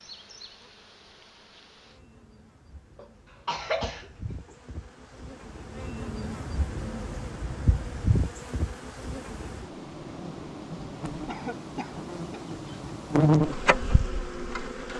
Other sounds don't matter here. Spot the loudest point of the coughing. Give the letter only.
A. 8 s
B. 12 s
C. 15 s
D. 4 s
D.